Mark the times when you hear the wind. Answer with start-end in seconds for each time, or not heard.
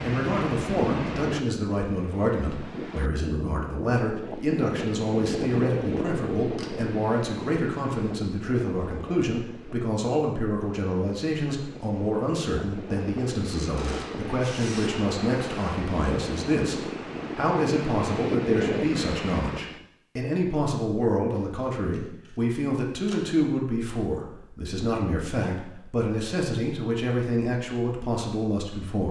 0.0-19.9.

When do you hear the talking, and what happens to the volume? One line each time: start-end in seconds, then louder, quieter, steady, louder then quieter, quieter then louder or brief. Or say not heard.
0.0-29.0 steady.